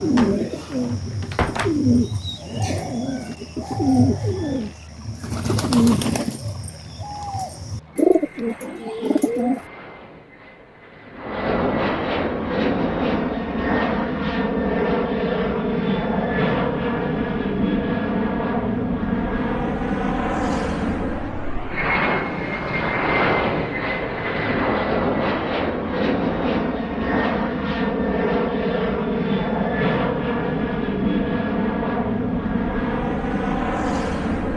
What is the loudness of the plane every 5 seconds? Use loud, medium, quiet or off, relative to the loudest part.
quiet, quiet, loud, loud, loud, loud, loud.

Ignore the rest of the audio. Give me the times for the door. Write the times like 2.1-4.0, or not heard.
0.1-1.8.